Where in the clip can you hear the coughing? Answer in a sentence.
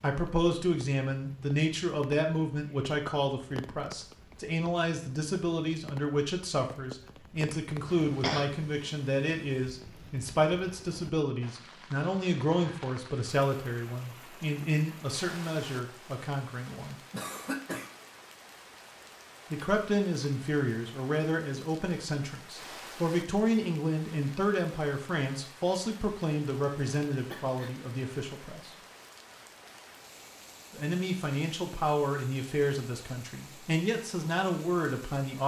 The coughing can be heard from 8.0 to 8.5 s, from 17.1 to 17.9 s and from 27.3 to 27.8 s.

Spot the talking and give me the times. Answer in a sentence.
You can hear the talking from 0.0 to 16.9 s, from 19.5 to 28.7 s and from 30.8 to 35.4 s.